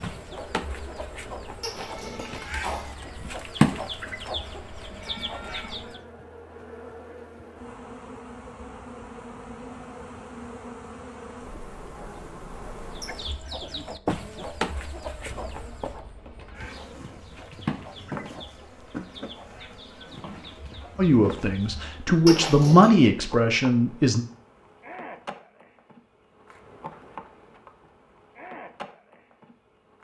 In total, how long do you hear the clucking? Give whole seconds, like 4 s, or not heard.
15 s.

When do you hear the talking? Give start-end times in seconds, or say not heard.
20.9-24.2.